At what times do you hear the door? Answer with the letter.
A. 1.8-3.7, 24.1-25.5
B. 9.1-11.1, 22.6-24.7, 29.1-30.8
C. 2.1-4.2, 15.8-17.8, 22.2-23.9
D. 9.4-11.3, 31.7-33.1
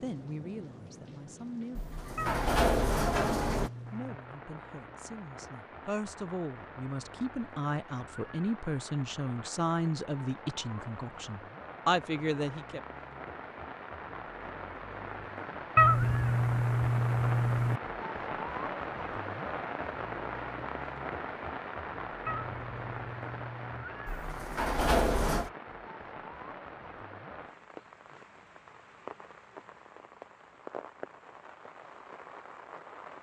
A.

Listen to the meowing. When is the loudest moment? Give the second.
16 s.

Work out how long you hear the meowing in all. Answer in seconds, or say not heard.
6 s.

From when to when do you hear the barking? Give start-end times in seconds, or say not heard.
not heard.